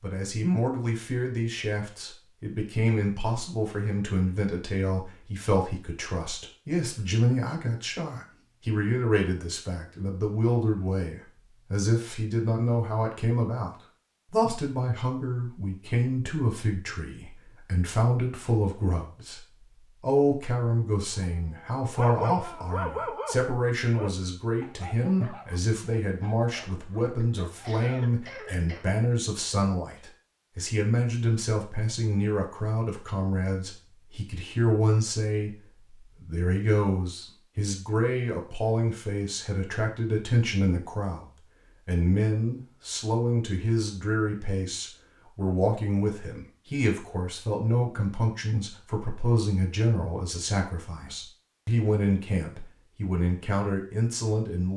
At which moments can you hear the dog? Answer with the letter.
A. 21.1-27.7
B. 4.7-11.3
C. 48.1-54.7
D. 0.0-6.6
A.